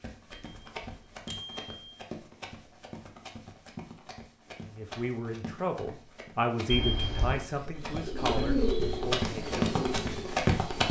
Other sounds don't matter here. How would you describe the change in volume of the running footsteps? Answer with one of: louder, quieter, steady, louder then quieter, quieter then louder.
louder.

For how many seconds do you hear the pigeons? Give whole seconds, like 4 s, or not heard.
3 s.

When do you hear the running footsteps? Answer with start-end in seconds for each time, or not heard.
0.0-6.7, 7.8-10.8.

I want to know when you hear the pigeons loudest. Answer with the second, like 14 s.
9 s.